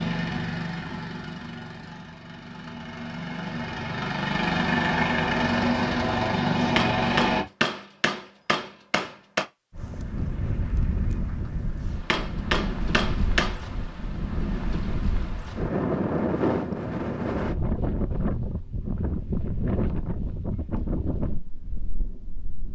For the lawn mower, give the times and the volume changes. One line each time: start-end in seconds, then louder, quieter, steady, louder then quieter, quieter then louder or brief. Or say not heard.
0.0-7.5 quieter then louder.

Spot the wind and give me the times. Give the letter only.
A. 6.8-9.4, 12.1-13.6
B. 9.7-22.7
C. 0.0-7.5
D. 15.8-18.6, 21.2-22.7
B.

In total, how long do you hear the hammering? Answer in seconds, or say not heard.
4 s.